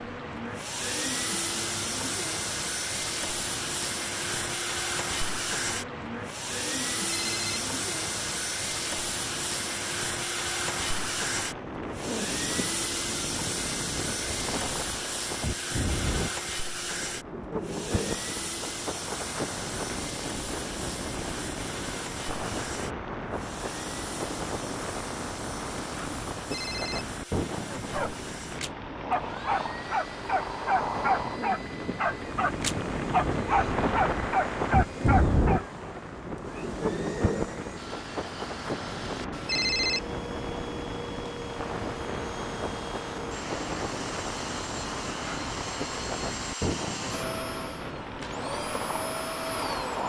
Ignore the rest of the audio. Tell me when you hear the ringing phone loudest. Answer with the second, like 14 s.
40 s.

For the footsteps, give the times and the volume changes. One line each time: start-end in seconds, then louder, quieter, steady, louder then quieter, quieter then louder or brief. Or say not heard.
not heard.